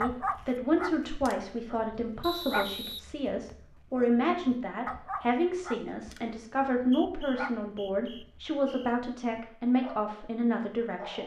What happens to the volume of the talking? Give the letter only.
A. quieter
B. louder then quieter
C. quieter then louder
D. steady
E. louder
D.